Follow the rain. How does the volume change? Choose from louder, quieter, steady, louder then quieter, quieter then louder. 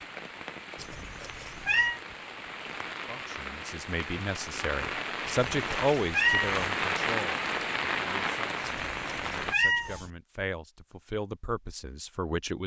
louder.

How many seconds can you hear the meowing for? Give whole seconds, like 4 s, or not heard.
4 s.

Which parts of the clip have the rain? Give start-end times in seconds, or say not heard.
0.0-9.6.